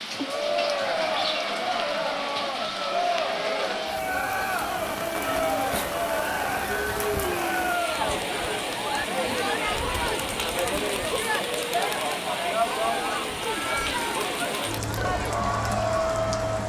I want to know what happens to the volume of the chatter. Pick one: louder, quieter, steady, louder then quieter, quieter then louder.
steady.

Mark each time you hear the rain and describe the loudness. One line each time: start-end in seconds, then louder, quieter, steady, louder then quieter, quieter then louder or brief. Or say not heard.
0.0-16.6 steady.